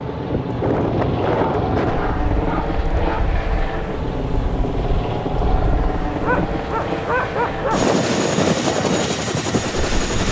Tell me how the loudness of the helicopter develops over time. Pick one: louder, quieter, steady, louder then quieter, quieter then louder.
steady.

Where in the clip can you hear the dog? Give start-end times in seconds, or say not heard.
1.2-3.2, 6.2-7.9.